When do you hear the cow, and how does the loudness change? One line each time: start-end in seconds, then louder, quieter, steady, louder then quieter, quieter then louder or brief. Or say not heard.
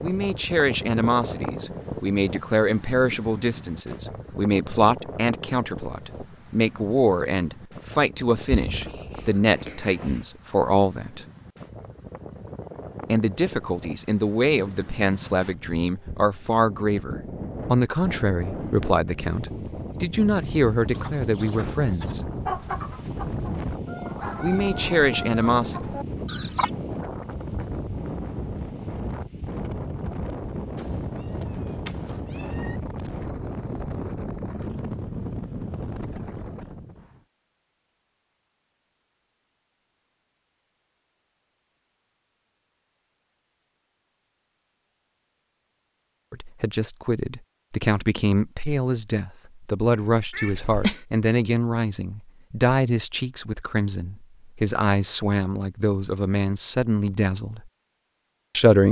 not heard.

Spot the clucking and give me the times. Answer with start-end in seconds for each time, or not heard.
20.9-26.7.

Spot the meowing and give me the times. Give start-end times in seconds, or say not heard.
8.4-10.2, 30.8-32.8, 50.3-51.0.